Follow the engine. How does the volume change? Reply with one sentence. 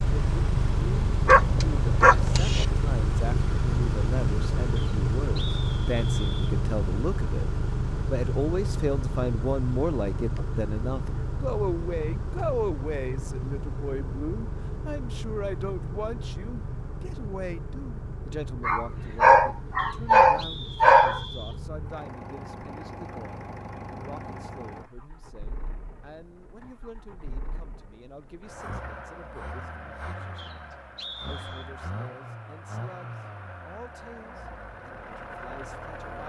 The loudness of the engine goes down.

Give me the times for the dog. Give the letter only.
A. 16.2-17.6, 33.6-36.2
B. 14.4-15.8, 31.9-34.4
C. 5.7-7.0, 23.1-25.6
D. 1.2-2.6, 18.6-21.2
D.